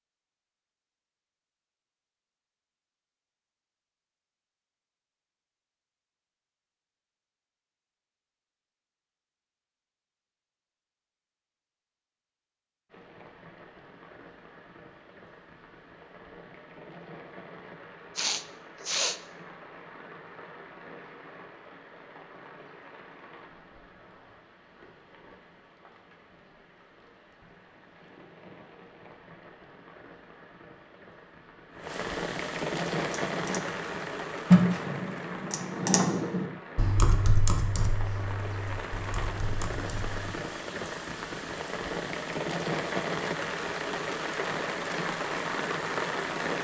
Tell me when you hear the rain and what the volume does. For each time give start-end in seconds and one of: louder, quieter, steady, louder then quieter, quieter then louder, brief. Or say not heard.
12.9-46.5 louder.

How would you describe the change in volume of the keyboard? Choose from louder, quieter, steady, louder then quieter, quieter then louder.
quieter.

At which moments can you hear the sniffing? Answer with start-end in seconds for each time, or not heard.
18.1-19.2.